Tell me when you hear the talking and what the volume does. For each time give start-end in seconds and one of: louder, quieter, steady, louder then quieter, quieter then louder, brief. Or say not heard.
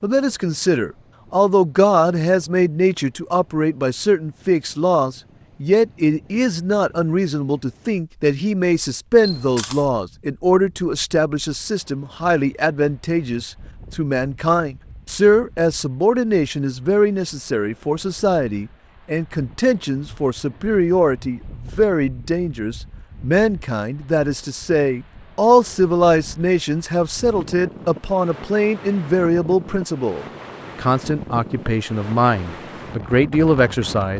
0.0-34.1 steady.